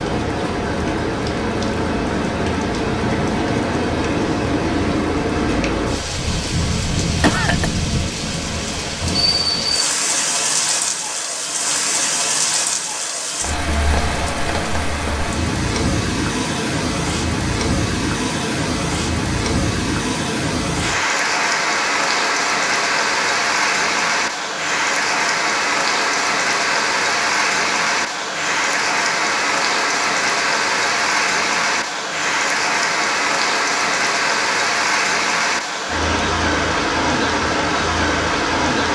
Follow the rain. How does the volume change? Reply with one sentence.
The volume of the rain stays about the same.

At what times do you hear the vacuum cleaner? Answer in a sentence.
You can't hear the vacuum cleaner here.